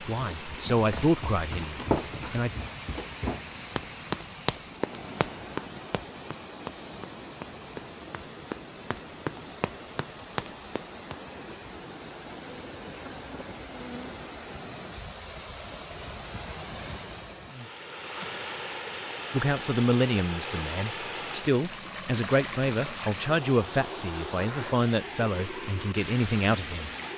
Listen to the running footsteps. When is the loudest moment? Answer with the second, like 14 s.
2 s.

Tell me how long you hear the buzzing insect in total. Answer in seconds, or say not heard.
2 s.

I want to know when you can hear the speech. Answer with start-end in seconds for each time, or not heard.
0.0-2.5, 19.3-26.9.